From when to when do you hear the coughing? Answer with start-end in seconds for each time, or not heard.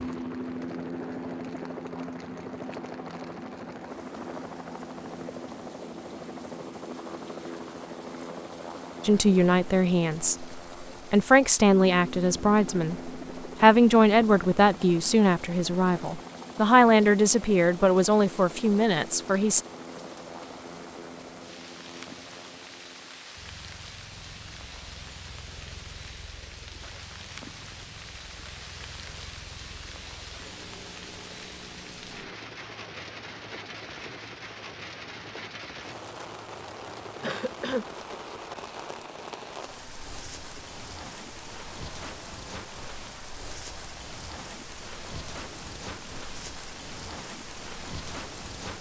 37.2-37.9.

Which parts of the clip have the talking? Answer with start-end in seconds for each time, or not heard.
9.0-19.6.